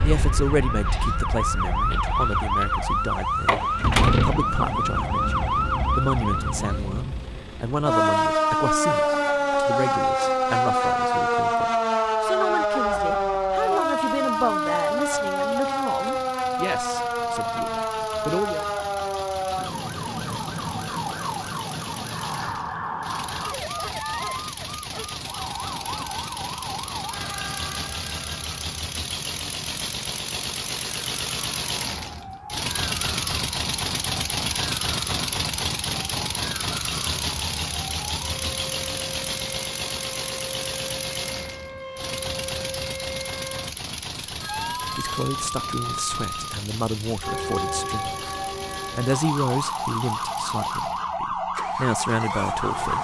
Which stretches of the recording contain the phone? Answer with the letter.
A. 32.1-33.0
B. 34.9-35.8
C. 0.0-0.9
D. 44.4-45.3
D.